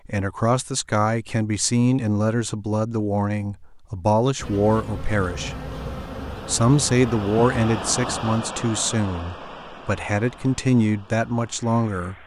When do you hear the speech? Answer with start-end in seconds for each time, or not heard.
0.1-5.7, 6.5-12.2.